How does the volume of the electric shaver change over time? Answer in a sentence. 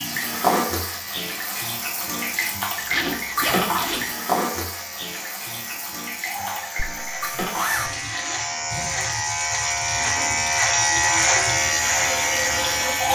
The loudness of the electric shaver goes up.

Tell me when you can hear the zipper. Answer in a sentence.
You can hear the zipper from 2.9 to 4.0 s and from 6.8 to 7.9 s.